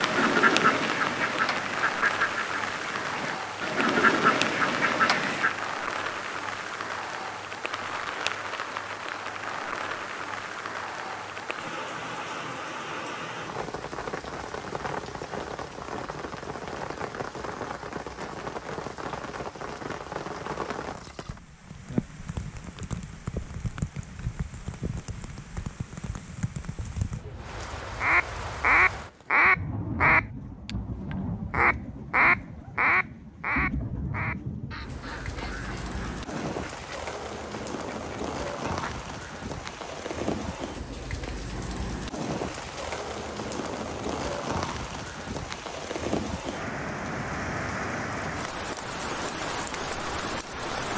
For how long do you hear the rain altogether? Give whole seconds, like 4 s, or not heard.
51 s.